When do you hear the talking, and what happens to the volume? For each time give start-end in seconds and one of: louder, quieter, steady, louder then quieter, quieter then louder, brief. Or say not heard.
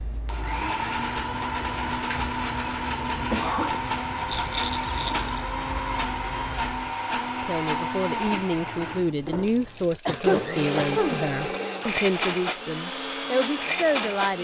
7.3-14.3 steady.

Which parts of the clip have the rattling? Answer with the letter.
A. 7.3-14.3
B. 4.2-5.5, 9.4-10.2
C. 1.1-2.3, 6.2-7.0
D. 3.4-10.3
B.